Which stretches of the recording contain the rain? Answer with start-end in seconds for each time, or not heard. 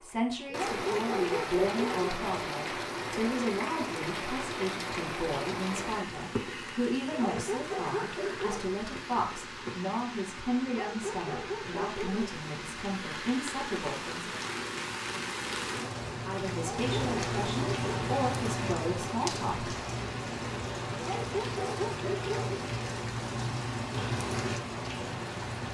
0.0-25.6.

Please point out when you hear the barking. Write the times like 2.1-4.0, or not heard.
0.5-2.1, 7.1-8.7, 10.7-12.3, 16.6-18.2, 20.9-22.6.